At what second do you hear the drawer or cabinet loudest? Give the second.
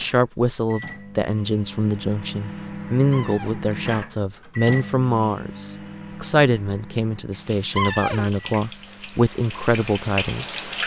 8 s.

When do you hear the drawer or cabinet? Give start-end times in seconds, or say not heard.
3.1-3.6, 7.8-8.2.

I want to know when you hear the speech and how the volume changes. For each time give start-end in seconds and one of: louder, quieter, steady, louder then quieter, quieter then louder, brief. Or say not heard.
0.0-10.6 steady.